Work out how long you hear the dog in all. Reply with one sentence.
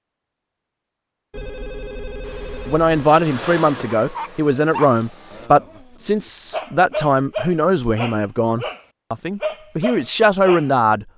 You can hear the dog for 7 seconds altogether.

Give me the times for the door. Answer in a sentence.
The door can't be heard in this clip.